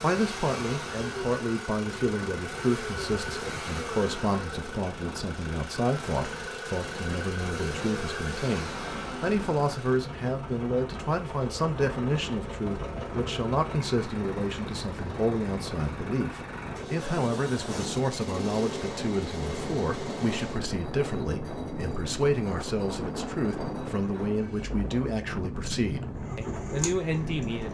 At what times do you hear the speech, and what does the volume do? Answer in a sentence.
The speech can be heard from 0.0 to 27.6 s, at a steady volume.